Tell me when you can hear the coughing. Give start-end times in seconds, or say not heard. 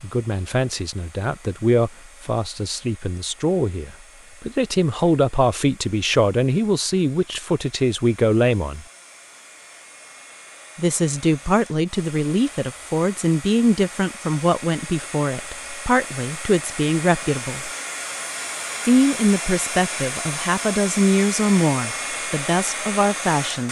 not heard.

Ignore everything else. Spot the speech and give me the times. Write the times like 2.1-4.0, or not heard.
0.0-8.8, 10.8-17.7, 18.9-23.6.